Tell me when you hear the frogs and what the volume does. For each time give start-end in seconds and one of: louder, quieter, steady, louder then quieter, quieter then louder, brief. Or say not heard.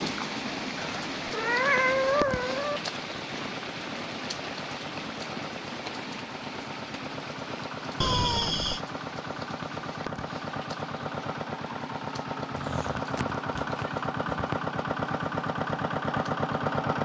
not heard.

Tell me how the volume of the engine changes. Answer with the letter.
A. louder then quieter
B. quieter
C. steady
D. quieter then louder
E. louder
E.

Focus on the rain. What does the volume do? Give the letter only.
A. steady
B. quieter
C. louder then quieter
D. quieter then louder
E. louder
B.